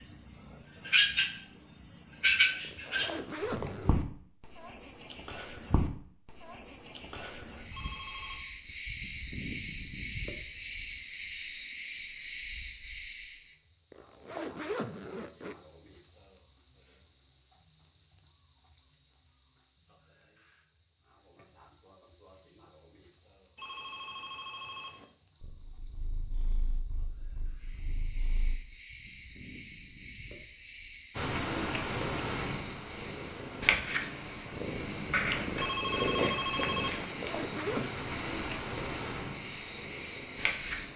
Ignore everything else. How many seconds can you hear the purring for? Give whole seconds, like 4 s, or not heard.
13 s.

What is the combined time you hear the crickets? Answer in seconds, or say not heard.
41 s.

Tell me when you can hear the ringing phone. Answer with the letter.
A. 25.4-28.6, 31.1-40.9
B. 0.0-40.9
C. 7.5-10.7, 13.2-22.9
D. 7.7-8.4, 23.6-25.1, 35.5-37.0
D.